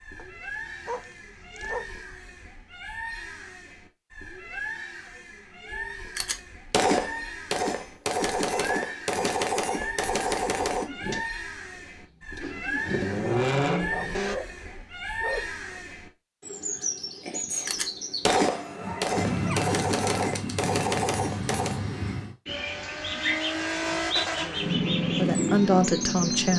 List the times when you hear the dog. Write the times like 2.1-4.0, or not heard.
0.1-2.0, 13.9-15.8, 18.4-20.3.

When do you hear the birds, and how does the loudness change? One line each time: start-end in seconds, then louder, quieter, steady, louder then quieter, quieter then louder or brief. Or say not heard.
0.0-26.5 louder.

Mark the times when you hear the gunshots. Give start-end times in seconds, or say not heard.
6.2-10.9, 17.6-21.8.